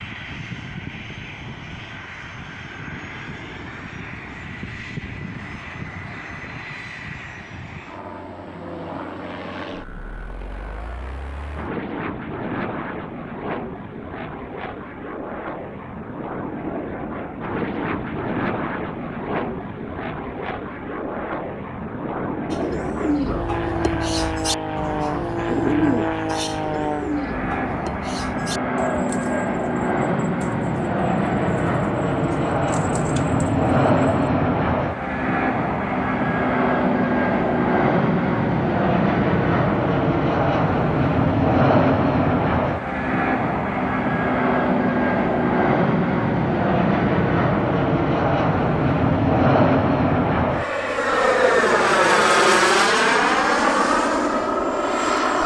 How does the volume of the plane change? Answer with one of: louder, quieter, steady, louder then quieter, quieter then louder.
louder.